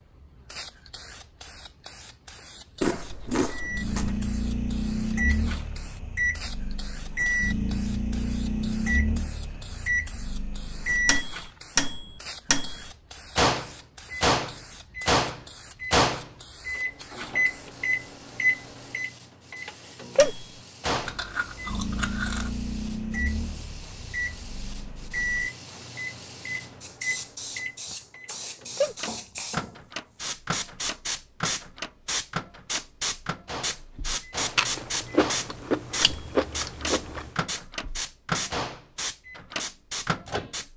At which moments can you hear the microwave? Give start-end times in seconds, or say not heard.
3.5-40.5.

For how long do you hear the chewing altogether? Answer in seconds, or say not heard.
6 s.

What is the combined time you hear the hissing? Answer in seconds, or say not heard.
41 s.